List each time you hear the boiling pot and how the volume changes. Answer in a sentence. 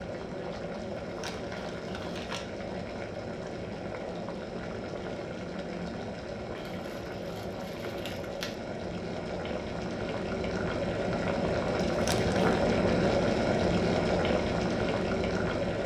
You can hear the boiling pot from 0.0 to 15.8 s, getting louder.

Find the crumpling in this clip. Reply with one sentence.
The crumpling can be heard from 1.0 to 2.5 s, from 6.5 to 8.6 s and from 11.8 to 12.6 s.